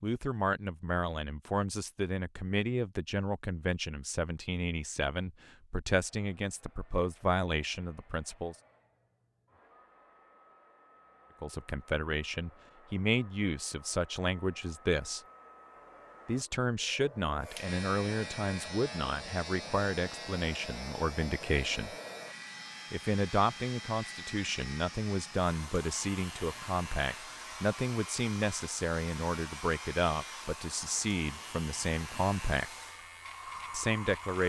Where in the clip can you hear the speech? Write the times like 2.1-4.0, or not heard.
0.0-8.6, 11.4-15.2, 16.2-21.9, 22.9-32.7, 33.7-34.4.